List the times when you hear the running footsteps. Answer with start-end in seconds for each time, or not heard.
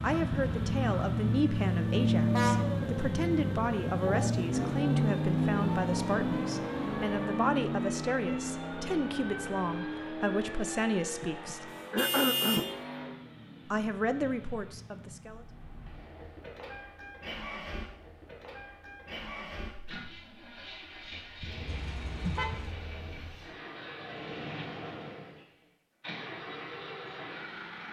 not heard.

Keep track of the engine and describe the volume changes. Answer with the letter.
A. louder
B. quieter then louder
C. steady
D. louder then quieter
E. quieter
E.